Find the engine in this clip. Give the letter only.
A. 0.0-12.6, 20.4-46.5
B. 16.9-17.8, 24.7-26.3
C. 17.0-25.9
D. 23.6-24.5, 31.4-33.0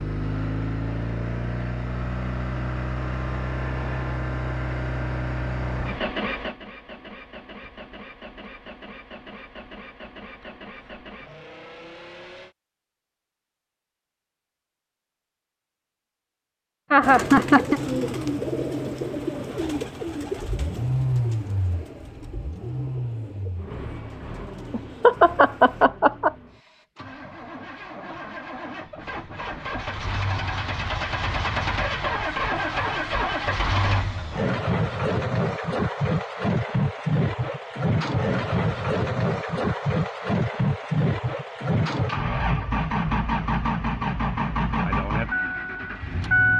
A.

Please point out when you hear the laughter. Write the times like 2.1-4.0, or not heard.
16.9-17.8, 24.7-26.3.